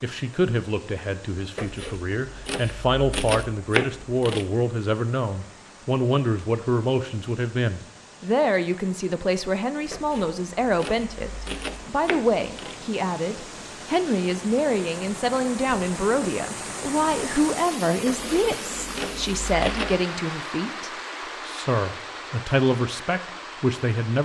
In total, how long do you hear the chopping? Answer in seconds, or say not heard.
8 s.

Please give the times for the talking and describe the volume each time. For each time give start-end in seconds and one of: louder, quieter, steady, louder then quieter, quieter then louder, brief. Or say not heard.
0.0-24.1 steady.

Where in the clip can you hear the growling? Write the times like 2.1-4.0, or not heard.
not heard.